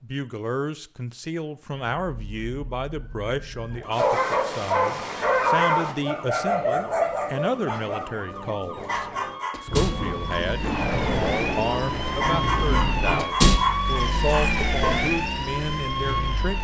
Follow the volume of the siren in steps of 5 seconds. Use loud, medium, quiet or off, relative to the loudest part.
quiet, medium, loud, loud.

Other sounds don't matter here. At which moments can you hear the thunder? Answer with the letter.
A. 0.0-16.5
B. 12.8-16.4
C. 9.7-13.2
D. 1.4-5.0
C.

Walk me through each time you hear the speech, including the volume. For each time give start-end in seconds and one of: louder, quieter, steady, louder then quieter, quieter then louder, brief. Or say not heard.
0.0-16.5 steady.